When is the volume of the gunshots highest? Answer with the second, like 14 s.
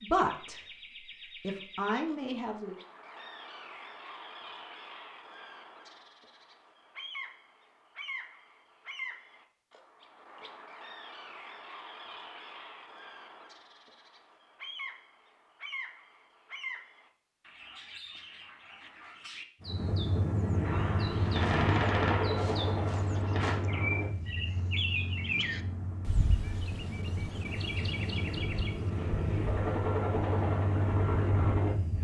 22 s.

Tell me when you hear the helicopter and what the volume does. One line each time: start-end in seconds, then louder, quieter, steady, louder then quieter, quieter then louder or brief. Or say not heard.
19.6-31.9 quieter then louder.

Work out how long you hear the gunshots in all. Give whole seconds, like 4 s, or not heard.
3 s.